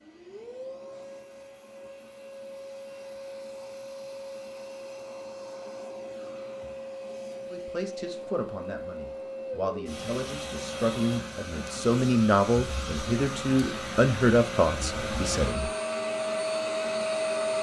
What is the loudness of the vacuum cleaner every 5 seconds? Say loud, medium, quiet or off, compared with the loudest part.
quiet, medium, medium, loud.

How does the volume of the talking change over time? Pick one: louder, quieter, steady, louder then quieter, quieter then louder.
louder.